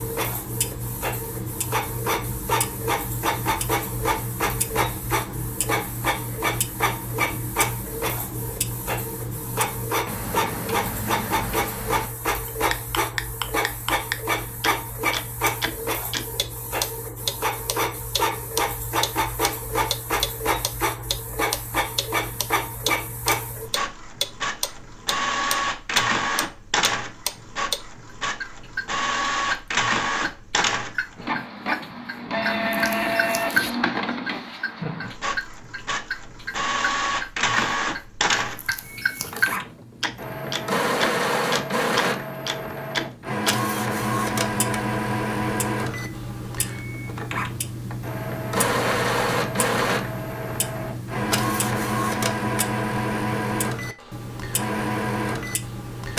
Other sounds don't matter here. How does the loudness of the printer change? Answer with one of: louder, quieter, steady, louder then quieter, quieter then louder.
steady.